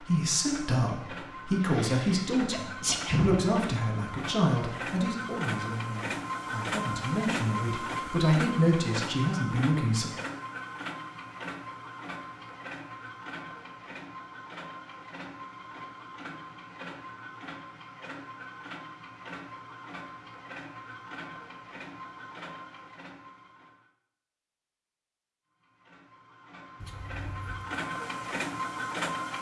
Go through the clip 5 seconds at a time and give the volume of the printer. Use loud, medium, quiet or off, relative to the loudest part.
medium, loud, medium, medium, medium, loud.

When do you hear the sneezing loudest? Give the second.
3 s.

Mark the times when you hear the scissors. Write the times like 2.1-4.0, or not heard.
26.8-27.7.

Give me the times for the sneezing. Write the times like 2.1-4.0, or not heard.
1.6-3.5.